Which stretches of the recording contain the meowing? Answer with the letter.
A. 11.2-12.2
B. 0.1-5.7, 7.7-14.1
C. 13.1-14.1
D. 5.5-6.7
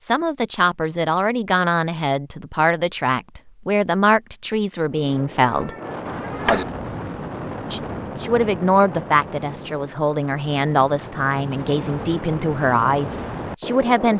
D.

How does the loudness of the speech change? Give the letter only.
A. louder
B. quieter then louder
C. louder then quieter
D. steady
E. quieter
D.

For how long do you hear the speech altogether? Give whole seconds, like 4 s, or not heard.
12 s.